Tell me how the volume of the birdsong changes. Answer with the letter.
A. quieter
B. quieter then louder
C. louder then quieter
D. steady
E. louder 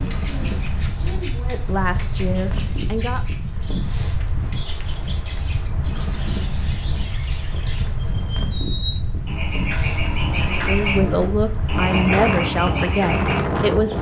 E.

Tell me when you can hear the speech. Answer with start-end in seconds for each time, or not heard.
0.2-3.2, 10.3-13.9.